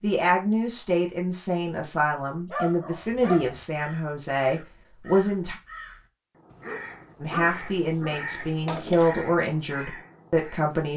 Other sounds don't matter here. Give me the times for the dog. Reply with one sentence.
You can hear the dog from 2.5 to 3.6 s and from 6.5 to 8.9 s.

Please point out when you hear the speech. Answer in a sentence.
The speech can be heard from 0.0 to 5.5 s and from 7.2 to 10.9 s.